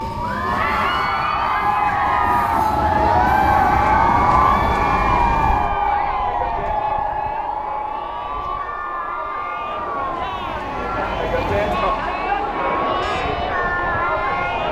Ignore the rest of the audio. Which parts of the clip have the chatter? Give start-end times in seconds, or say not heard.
0.1-14.6.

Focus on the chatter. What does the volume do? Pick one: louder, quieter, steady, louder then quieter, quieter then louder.
quieter then louder.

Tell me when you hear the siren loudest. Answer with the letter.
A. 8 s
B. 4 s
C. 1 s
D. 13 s
B.